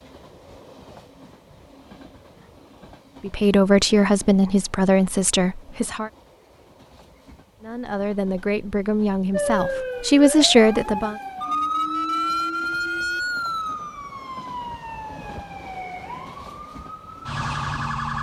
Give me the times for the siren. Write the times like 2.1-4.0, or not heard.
9.3-18.1.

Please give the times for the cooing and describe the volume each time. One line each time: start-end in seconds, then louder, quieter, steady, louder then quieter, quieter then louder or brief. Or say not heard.
not heard.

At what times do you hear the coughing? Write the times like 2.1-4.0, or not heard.
not heard.